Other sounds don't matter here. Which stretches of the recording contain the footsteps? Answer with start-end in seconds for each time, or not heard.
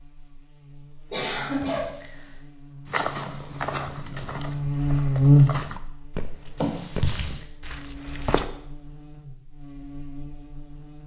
2.9-8.4.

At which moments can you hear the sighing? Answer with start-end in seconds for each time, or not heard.
1.1-2.5, 6.5-7.5.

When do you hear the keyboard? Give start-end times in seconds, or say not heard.
not heard.